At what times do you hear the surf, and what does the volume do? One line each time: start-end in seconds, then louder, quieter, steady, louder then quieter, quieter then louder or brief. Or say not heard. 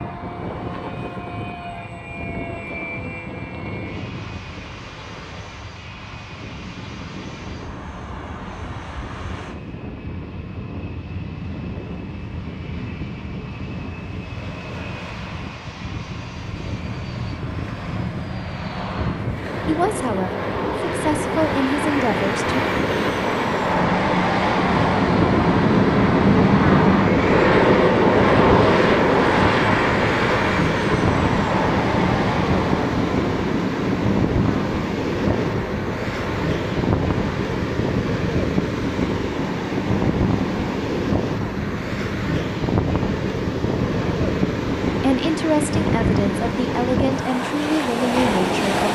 0.0-48.9 louder.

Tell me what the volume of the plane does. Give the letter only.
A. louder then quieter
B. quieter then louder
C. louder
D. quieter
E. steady
A.